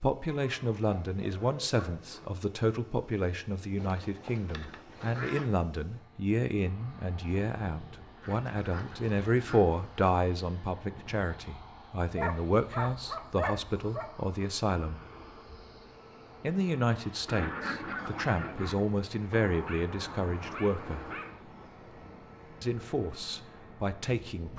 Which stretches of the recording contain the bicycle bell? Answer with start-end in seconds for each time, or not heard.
not heard.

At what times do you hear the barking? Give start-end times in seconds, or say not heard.
0.3-2.2, 12.2-14.1, 19.3-21.3.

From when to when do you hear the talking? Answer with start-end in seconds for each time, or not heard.
0.0-15.0, 16.4-21.1, 22.6-24.5.